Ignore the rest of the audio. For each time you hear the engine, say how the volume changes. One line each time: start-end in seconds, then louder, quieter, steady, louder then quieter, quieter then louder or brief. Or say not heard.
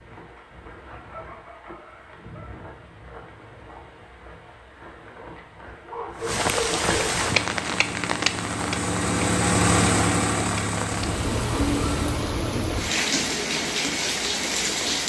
7.2-12.1 louder then quieter.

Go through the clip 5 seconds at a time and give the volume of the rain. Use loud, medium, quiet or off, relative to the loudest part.
quiet, loud, loud.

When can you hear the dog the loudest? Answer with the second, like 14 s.
7 s.